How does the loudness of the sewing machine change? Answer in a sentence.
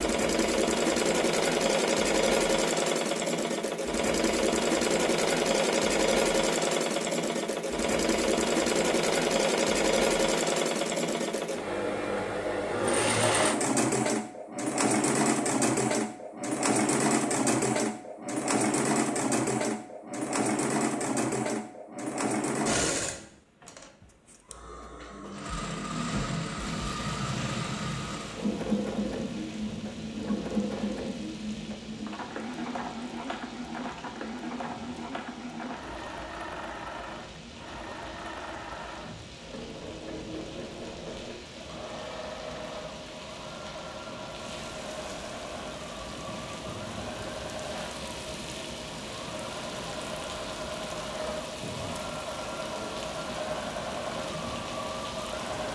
The volume of the sewing machine goes down.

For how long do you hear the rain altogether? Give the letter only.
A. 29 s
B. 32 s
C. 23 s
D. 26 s
A.